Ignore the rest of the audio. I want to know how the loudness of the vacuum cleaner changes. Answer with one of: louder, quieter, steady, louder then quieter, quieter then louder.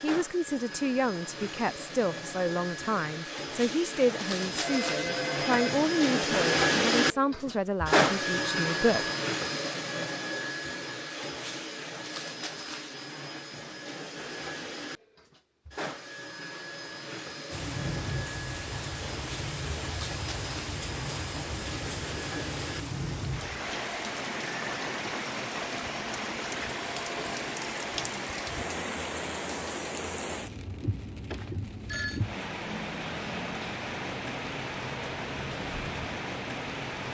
louder then quieter.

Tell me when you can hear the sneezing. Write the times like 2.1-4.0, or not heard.
not heard.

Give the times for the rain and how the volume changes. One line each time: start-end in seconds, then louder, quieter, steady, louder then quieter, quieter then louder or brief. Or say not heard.
17.5-37.0 steady.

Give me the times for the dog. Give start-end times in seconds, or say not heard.
not heard.